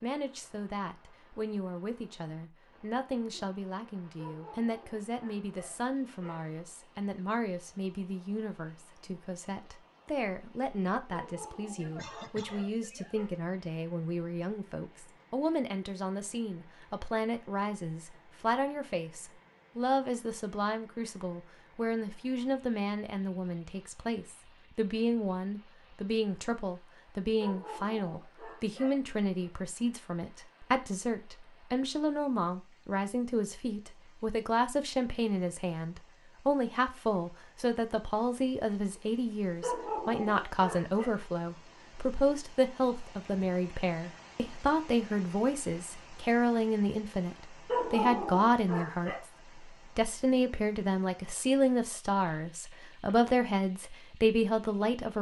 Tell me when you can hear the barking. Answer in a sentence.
The barking can be heard from 4.2 to 6.5 s, from 11.1 to 13.3 s, from 27.4 to 29.5 s, from 39.6 to 41.1 s and from 47.6 to 49.2 s.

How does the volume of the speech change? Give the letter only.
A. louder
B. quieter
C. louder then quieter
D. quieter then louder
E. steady
A.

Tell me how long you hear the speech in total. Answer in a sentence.
You can hear the speech for 55 seconds altogether.